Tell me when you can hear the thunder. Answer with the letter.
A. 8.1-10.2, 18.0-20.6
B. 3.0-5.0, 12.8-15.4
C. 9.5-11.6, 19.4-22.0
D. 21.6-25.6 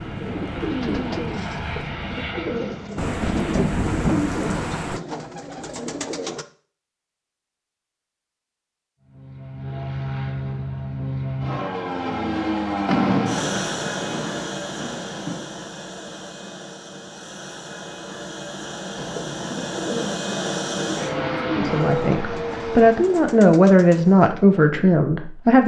B.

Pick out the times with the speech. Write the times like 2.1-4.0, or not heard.
21.6-25.6.